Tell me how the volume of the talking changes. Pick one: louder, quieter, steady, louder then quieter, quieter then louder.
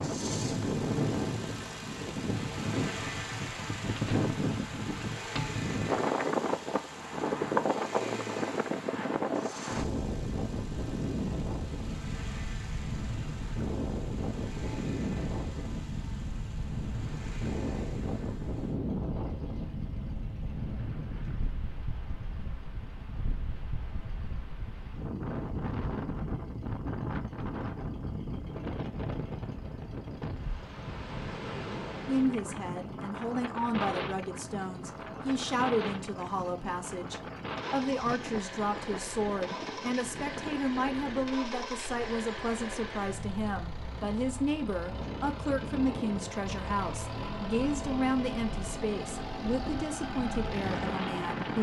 steady.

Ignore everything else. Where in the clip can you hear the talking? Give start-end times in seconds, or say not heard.
32.0-51.5.